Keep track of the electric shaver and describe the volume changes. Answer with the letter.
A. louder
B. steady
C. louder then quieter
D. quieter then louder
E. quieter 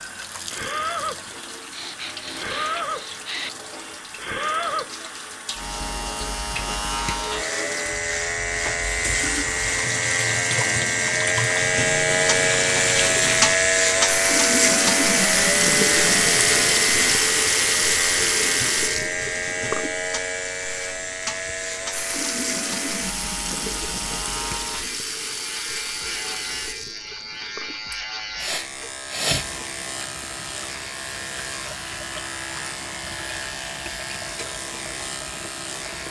C.